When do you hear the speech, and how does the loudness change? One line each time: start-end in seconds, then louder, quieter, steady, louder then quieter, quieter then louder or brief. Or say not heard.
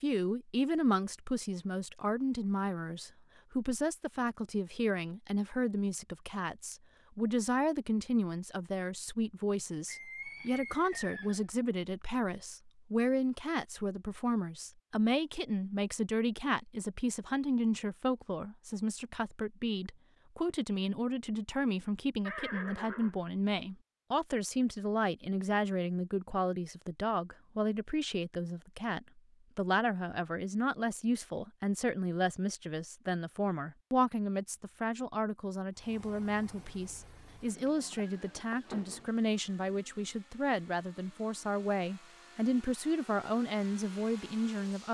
0.0-44.8 steady.